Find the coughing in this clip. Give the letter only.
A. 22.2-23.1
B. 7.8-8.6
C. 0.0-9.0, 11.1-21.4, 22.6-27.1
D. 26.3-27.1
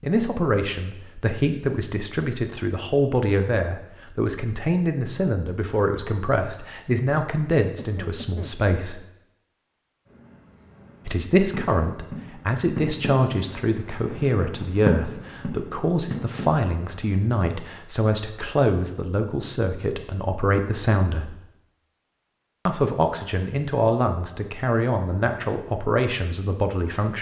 B.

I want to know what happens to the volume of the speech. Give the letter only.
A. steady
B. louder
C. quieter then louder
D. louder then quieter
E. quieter
A.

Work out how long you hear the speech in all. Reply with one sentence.
You can hear the speech for 24 seconds altogether.